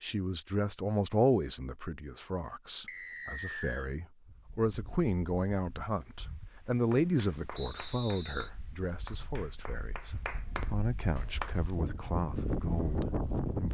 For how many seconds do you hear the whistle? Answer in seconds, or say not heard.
2 s.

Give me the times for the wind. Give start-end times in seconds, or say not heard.
4.2-13.7.